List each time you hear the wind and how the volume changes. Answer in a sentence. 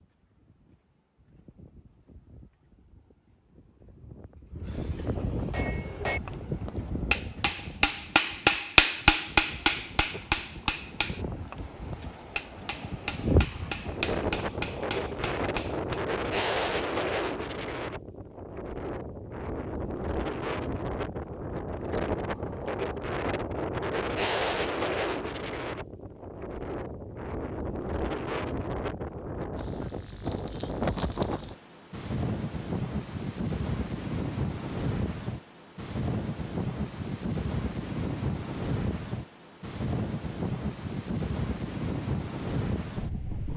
You can hear the wind from 0.0 to 43.5 s, getting louder.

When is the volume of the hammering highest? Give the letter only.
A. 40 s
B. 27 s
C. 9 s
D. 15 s
C.